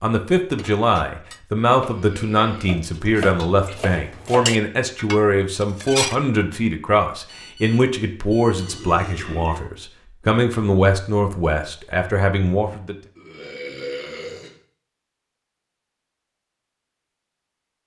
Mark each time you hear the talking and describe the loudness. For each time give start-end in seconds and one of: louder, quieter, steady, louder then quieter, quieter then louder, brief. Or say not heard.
0.0-12.9 steady.